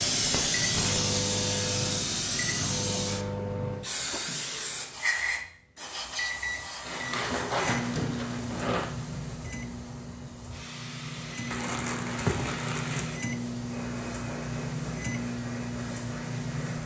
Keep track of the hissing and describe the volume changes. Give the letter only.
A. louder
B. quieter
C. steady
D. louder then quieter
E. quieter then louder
B.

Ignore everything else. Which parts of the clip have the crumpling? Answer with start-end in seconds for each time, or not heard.
0.2-1.2, 6.8-8.9, 11.5-13.2.